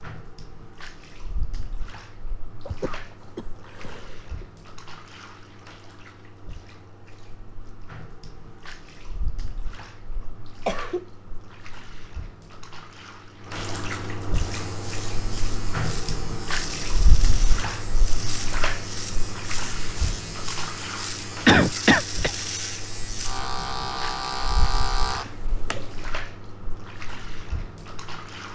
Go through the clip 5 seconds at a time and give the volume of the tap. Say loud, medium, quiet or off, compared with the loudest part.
quiet, quiet, medium, loud, medium, medium.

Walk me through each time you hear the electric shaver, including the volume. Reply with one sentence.
The electric shaver can be heard from 14.4 to 26.1 s, getting louder.